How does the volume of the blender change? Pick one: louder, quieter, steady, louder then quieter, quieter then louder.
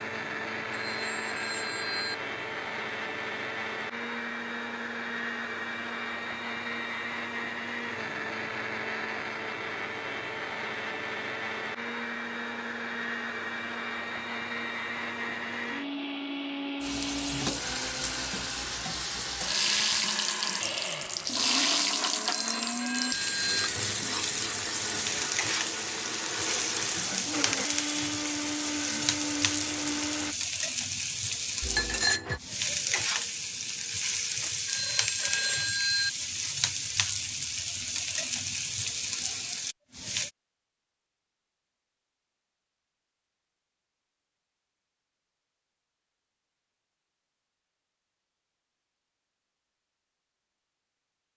steady.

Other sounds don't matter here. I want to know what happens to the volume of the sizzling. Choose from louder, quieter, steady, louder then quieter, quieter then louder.
steady.